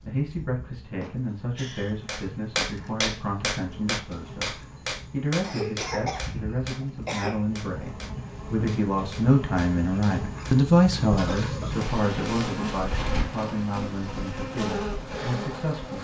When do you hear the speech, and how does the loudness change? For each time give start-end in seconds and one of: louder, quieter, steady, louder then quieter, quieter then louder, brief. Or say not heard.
0.1-15.9 louder then quieter.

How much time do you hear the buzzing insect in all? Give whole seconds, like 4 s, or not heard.
16 s.